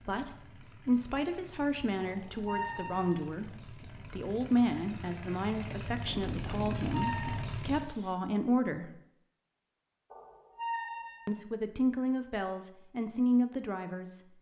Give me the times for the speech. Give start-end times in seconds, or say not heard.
0.1-8.9, 11.2-14.2.